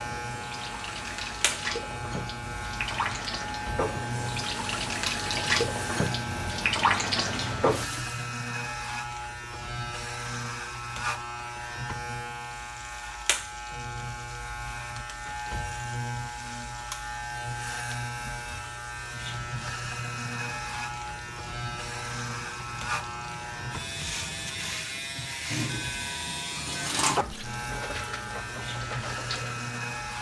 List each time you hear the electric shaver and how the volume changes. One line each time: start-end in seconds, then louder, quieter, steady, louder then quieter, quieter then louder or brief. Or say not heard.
0.0-30.1 steady.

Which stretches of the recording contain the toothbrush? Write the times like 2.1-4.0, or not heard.
not heard.